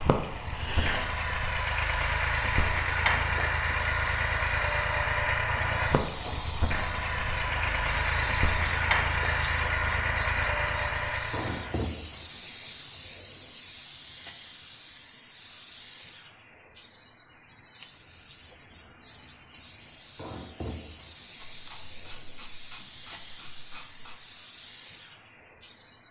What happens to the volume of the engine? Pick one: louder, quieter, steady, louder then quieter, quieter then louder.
steady.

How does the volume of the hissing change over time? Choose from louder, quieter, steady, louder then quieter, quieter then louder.
louder then quieter.